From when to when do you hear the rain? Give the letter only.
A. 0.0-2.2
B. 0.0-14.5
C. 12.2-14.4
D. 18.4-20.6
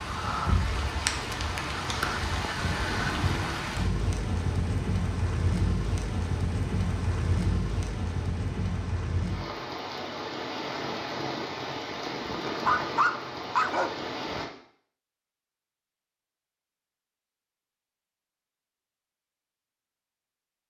B.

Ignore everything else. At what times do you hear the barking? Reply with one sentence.
The barking can be heard from 12.2 to 14.4 s.